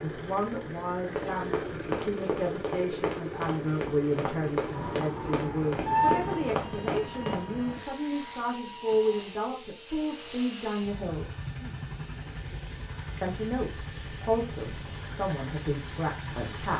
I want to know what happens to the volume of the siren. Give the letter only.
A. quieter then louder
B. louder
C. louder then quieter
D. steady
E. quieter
C.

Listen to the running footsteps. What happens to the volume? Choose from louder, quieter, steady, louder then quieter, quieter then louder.
steady.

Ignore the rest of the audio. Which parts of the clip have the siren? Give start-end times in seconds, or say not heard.
4.7-9.2.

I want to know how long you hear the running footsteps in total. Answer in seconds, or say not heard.
6 s.